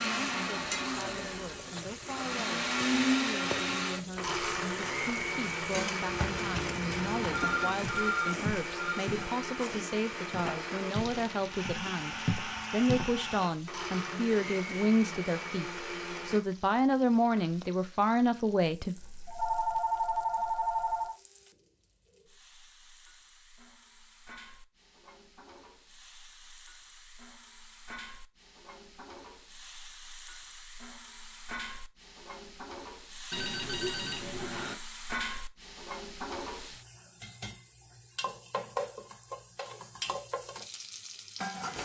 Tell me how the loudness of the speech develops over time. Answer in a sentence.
The volume of the speech goes up.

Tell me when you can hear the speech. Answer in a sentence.
You can hear the speech from 0.0 to 18.9 s.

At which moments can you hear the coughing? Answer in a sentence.
The coughing can't be heard in this clip.